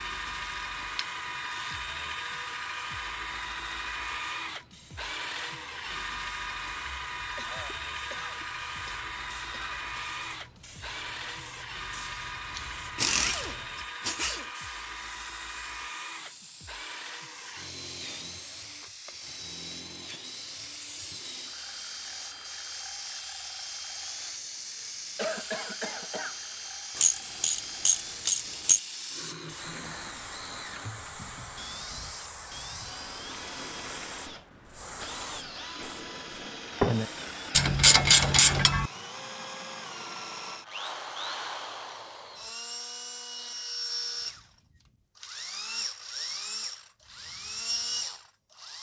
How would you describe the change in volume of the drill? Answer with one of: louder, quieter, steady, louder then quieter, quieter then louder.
quieter then louder.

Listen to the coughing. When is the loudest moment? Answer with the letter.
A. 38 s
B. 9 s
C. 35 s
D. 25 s
D.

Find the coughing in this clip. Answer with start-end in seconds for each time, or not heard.
7.3-9.9, 24.7-26.4.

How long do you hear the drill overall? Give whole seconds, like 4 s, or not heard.
49 s.